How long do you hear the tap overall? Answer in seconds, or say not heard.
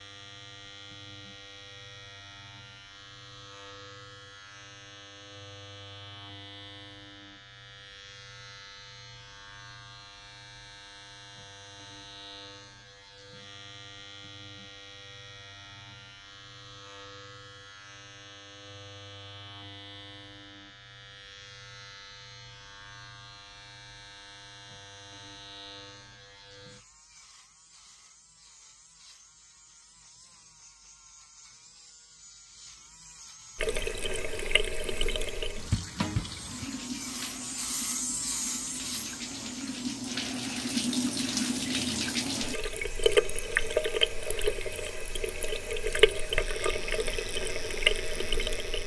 15 s.